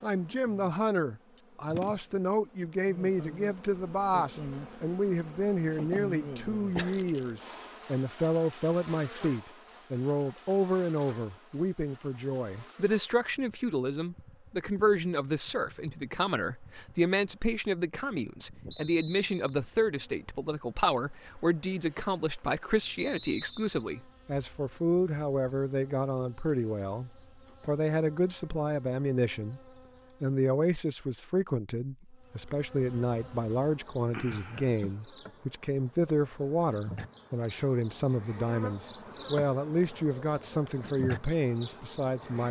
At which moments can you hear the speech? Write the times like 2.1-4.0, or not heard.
0.0-29.6, 30.2-42.4.